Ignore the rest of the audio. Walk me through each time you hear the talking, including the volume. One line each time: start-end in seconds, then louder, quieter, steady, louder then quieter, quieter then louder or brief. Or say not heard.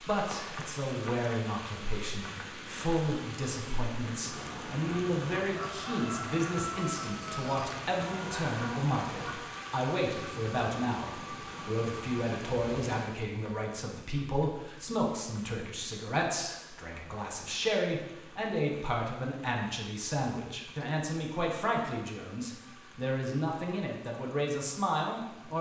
0.0-25.5 steady.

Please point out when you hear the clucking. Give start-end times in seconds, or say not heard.
4.2-9.6.